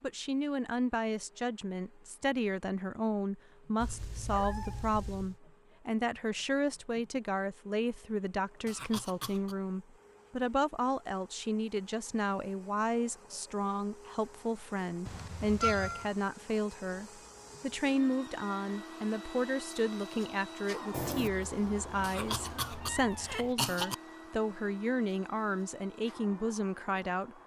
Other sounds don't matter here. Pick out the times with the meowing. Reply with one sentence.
You can hear the meowing from 3.8 to 5.4 s, from 15.1 to 16.1 s and from 20.9 to 23.6 s.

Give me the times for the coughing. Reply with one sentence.
The coughing can be heard from 8.7 to 9.6 s and from 22.0 to 23.9 s.